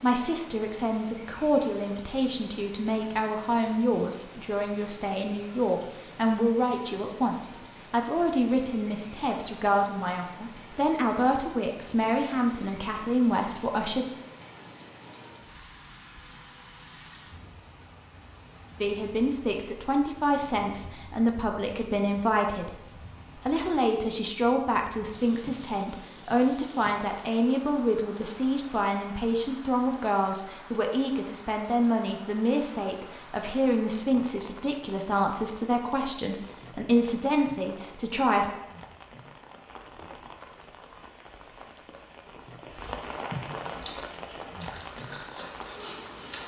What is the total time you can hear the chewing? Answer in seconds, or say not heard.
3 s.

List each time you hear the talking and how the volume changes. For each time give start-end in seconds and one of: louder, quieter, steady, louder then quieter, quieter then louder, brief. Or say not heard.
0.0-14.1 steady
18.8-38.5 steady.